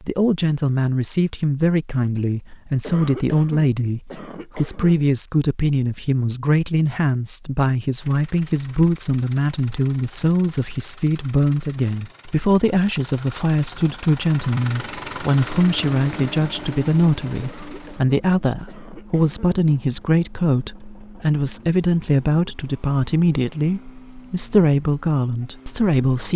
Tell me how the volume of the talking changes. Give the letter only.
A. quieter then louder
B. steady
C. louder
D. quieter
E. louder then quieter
B.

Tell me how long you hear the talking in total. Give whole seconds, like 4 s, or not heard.
26 s.